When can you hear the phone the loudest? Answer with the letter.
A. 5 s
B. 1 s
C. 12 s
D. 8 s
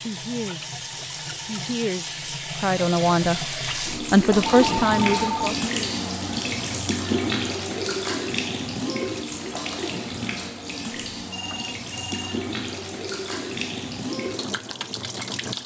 A.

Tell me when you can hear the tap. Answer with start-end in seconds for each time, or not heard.
0.0-15.6.